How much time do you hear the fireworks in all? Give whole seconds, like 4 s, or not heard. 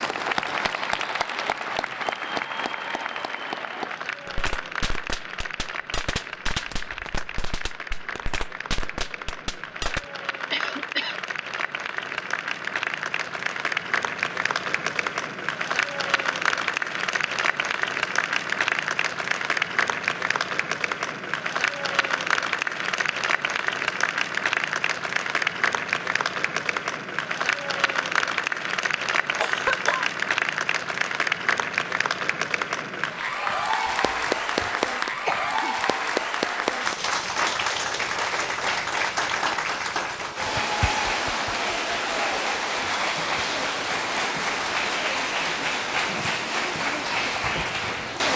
6 s.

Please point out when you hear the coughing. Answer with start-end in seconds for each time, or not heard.
10.5-11.2, 29.4-30.1, 33.9-35.8.